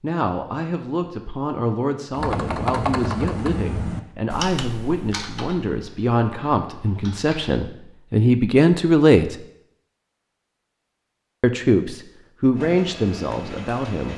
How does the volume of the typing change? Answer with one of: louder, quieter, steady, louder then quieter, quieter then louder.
quieter.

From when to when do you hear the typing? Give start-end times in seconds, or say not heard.
2.1-7.6.